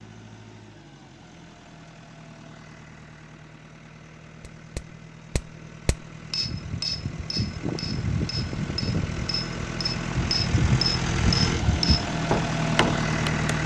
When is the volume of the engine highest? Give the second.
13 s.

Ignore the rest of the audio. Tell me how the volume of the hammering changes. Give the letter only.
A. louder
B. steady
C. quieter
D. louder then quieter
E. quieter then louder
A.